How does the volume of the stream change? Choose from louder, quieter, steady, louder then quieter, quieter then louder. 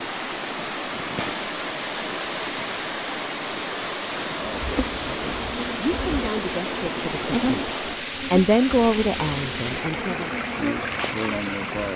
steady.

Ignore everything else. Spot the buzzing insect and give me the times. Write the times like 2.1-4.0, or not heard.
4.4-11.9.